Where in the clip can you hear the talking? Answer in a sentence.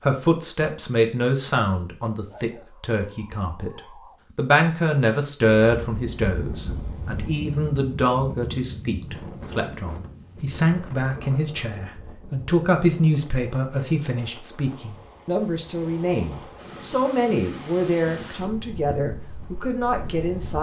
You can hear the talking from 0.0 to 20.5 s.